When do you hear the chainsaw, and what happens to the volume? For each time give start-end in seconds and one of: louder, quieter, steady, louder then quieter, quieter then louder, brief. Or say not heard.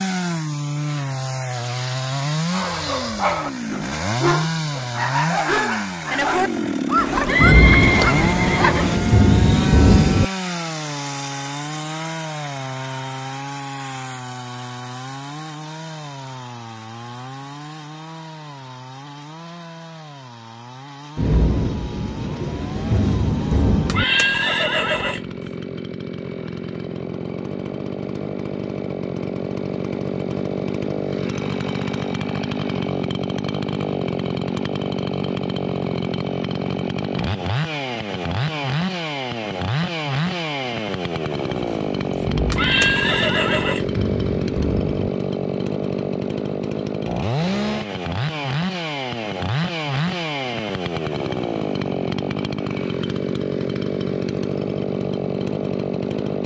0.0-56.4 quieter then louder.